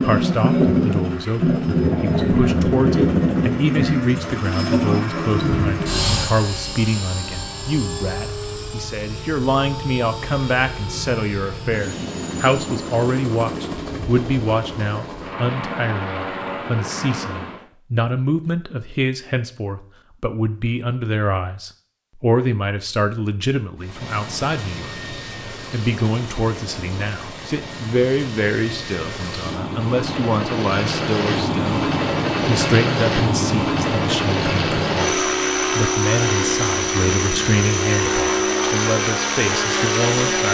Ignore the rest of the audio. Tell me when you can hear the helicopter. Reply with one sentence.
You can hear the helicopter from 0.0 to 17.6 s and from 23.8 to 40.4 s.